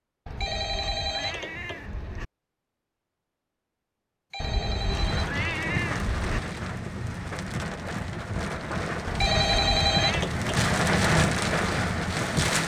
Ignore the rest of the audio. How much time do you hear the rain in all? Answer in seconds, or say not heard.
8 s.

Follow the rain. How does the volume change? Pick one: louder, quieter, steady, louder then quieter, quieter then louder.
louder.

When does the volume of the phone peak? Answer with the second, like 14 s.
10 s.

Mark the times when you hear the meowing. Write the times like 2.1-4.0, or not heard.
0.2-2.2, 4.4-6.4, 9.1-10.2.